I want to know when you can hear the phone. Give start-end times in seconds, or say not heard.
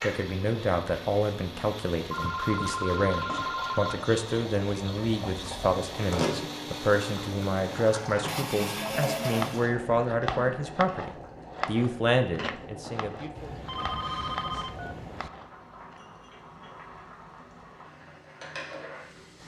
2.1-4.0, 8.9-9.4, 13.3-15.3.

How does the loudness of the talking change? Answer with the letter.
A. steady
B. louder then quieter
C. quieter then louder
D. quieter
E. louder
A.